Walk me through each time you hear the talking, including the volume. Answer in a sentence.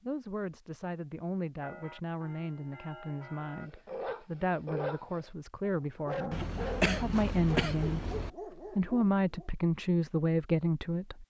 The talking can be heard from 0.0 to 11.2 s, getting louder.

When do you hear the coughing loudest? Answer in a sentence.
The loudest moment of the coughing is at 7 seconds.